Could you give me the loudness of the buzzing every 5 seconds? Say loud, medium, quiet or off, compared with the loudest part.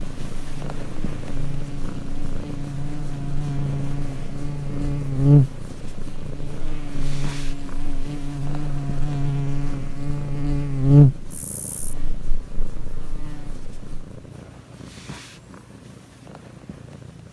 medium, loud, loud, off.